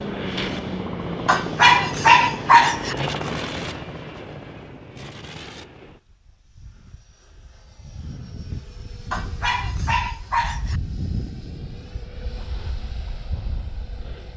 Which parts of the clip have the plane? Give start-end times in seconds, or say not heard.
0.0-14.3.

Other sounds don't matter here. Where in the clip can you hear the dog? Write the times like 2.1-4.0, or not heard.
1.2-3.0, 9.1-10.8.